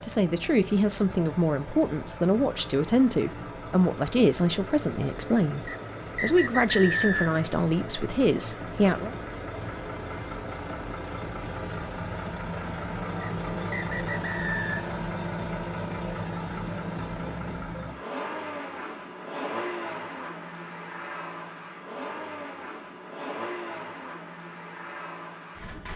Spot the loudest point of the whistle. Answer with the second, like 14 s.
7 s.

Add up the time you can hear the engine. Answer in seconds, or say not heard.
26 s.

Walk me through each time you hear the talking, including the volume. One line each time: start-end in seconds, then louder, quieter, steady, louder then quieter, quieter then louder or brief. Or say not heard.
0.0-9.2 steady.